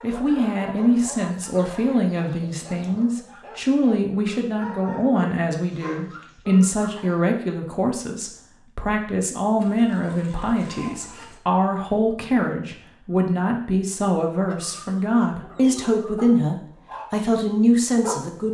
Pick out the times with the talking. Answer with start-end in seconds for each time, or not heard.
0.0-18.4.